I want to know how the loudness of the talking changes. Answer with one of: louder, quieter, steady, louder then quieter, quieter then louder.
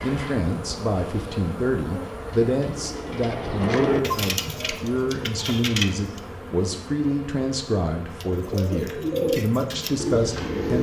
steady.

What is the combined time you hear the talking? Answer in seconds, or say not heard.
11 s.